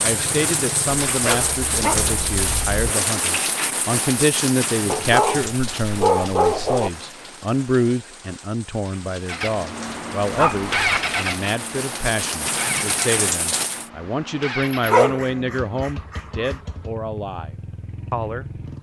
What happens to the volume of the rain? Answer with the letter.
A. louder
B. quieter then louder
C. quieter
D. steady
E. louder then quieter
B.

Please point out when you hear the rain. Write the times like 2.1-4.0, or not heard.
0.0-13.9.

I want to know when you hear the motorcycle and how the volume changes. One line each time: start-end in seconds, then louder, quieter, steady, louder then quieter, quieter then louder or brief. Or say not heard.
0.1-2.4 brief
9.2-18.7 quieter.